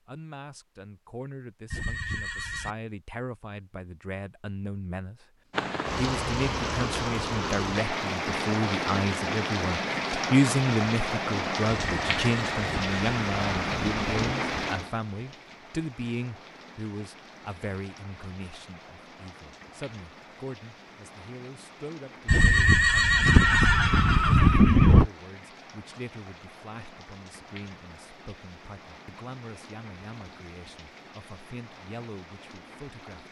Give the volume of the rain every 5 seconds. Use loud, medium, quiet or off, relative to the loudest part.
off, loud, loud, quiet, quiet, quiet, quiet.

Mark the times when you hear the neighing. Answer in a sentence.
You can hear the neighing from 1.7 to 2.8 s, from 11.7 to 14.2 s and from 22.2 to 25.1 s.